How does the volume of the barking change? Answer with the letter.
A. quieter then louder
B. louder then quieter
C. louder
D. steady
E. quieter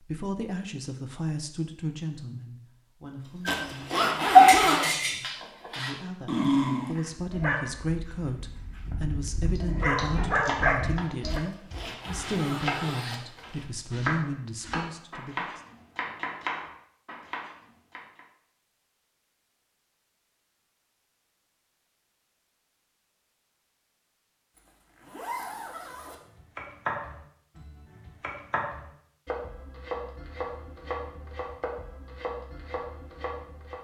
A.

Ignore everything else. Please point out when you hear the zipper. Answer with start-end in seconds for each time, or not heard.
3.5-5.0, 11.2-13.7, 24.6-26.1.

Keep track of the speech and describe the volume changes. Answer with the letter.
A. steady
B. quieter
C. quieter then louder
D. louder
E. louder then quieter
C.